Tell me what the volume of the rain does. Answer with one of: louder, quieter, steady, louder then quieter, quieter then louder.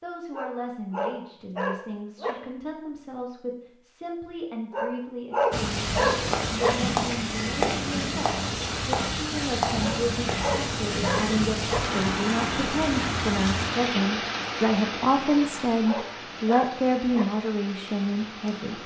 quieter.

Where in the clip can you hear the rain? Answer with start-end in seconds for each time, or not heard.
5.5-18.8.